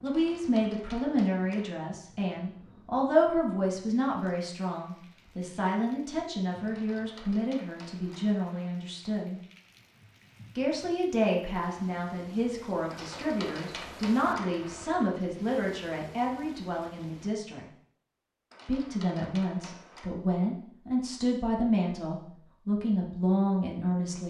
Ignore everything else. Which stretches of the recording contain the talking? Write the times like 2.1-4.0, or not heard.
0.0-9.4, 10.6-17.6, 18.6-24.2.